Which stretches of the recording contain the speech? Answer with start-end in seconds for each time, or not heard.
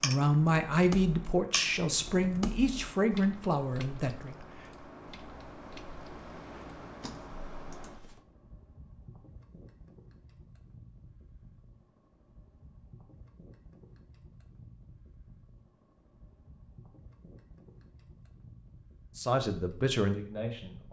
0.0-4.3, 19.1-20.8.